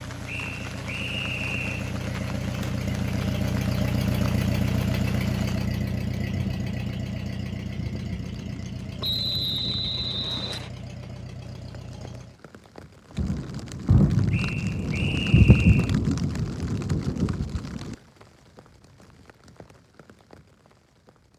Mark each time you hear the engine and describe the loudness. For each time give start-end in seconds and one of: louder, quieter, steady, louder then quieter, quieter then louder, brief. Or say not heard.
0.0-12.4 louder then quieter.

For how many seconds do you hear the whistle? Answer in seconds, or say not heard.
5 s.